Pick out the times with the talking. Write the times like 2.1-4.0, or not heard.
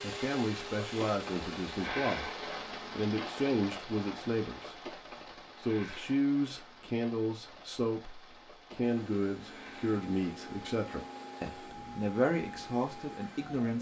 0.0-13.7.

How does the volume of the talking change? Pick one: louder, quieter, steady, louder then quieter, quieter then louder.
steady.